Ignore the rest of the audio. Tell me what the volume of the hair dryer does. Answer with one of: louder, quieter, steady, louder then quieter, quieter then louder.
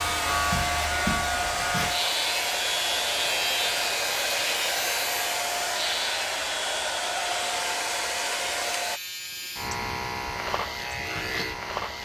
steady.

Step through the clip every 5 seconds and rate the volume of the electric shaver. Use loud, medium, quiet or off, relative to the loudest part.
loud, medium, loud.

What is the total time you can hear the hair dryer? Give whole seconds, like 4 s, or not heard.
9 s.